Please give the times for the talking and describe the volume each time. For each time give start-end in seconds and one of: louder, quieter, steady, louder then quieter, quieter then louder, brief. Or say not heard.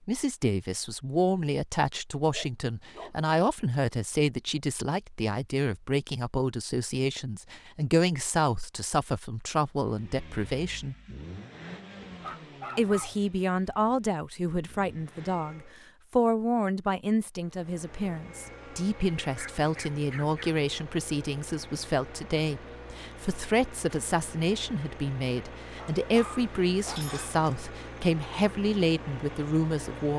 0.1-10.9 steady
12.8-30.1 steady.